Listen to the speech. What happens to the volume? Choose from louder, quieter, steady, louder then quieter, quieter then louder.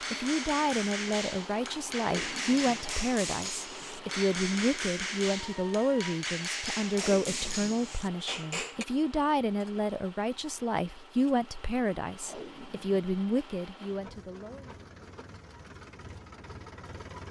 steady.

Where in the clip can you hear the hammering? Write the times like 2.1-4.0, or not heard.
0.0-8.8.